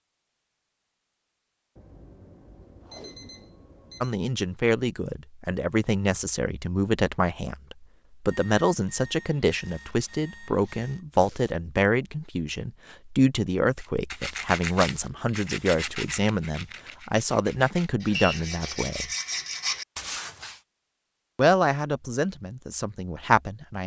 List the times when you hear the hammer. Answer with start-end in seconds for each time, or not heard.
not heard.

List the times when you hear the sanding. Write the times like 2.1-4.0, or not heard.
13.8-20.6.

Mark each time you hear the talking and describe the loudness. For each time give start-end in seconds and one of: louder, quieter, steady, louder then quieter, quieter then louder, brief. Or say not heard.
4.0-19.1 steady
21.4-23.8 brief.